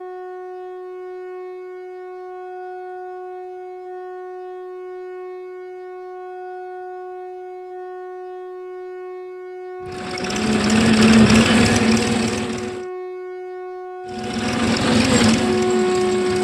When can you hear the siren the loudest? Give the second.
16 s.